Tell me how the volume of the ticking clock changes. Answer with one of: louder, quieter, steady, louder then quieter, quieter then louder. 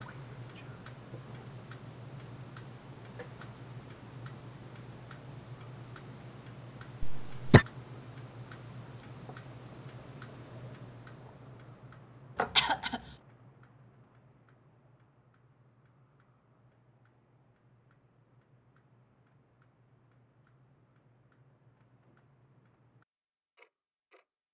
quieter.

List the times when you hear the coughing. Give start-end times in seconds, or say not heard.
7.0-7.7, 12.3-13.0.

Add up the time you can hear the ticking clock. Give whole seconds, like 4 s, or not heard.
24 s.